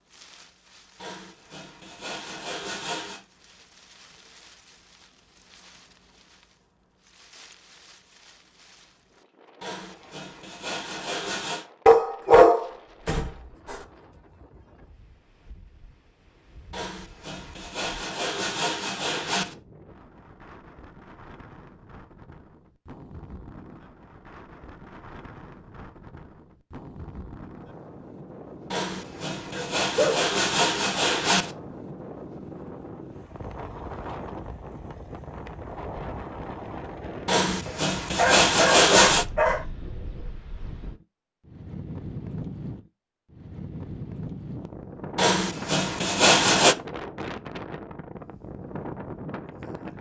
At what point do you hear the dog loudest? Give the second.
12 s.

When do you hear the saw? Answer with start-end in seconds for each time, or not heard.
1.0-3.2, 9.6-11.7, 16.7-19.6, 28.7-31.6, 37.2-39.2, 45.1-46.8.